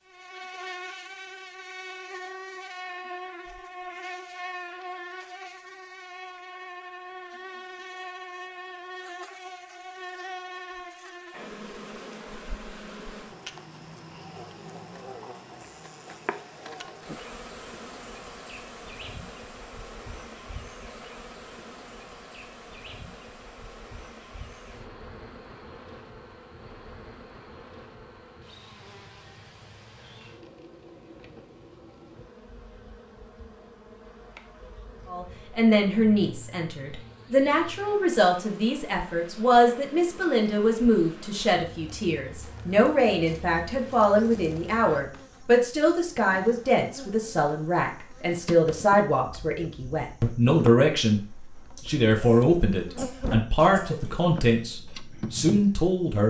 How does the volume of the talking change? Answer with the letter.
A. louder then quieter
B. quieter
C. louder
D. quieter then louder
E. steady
E.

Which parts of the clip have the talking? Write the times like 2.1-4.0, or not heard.
35.1-51.2, 51.9-56.2.